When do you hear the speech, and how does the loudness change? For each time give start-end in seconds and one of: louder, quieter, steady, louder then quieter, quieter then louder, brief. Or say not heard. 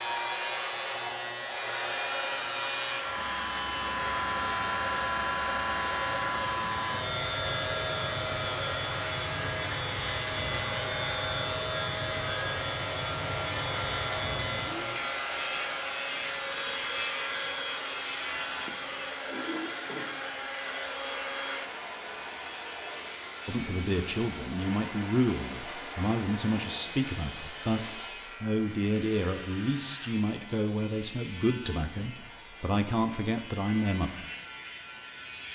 23.4-34.2 steady.